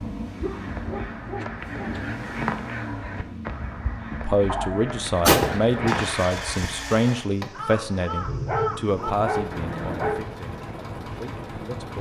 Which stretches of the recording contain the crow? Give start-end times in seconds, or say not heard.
0.3-10.3.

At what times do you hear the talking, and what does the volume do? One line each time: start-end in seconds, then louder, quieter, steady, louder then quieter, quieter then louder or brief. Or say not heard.
4.2-11.9 quieter.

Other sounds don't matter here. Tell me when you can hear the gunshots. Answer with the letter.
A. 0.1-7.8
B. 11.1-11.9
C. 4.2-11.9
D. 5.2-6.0
D.